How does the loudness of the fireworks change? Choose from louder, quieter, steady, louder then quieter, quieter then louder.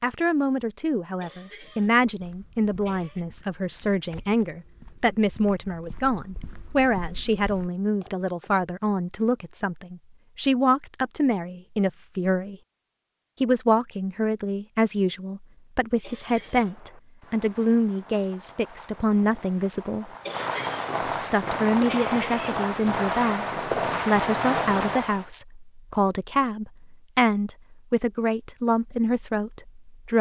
louder.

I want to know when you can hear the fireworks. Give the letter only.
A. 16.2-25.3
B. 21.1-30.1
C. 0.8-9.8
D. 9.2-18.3
A.